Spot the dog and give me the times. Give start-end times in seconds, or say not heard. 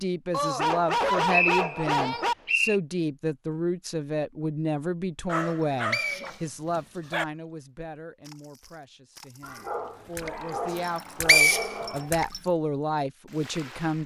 0.3-2.4, 5.2-7.2, 9.4-12.1.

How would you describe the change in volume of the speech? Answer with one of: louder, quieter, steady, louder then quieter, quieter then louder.
quieter then louder.